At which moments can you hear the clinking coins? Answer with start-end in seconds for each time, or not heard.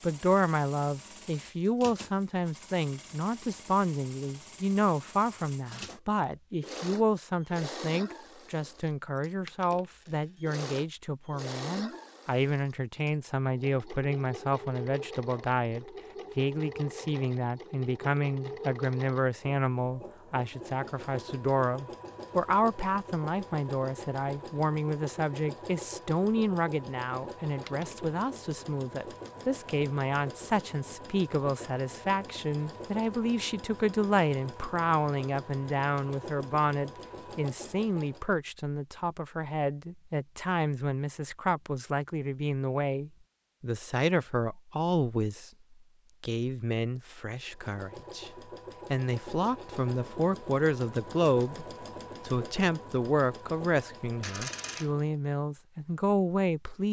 9.4-10.4, 27.6-28.1, 54.2-55.0.